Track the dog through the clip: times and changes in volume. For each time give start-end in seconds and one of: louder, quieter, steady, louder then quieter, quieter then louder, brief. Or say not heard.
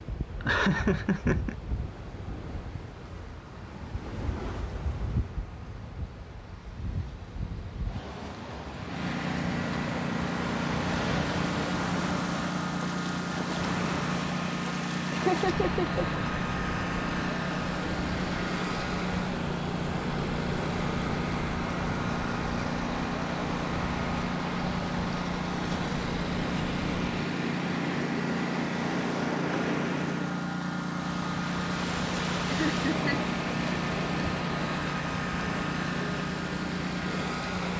not heard.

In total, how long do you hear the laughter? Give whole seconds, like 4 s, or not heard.
3 s.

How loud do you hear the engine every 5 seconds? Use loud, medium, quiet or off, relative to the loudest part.
quiet, medium, loud, loud, loud, loud, loud, loud.